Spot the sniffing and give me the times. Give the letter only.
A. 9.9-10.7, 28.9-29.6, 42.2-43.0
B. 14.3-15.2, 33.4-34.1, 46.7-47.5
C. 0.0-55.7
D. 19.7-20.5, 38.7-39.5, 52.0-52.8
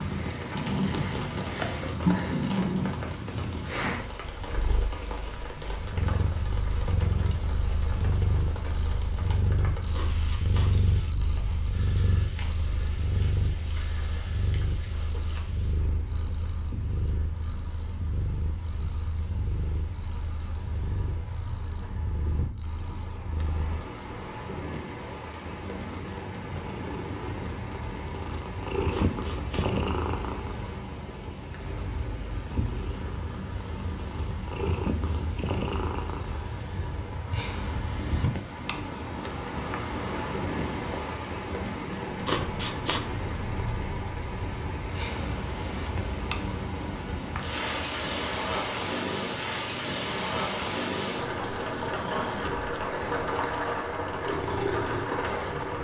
A.